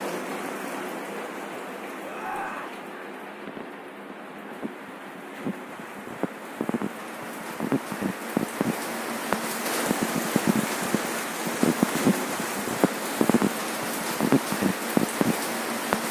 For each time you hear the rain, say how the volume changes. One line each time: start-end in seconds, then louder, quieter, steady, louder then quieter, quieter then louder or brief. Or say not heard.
0.0-16.0 louder.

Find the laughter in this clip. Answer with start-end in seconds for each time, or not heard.
2.0-2.8.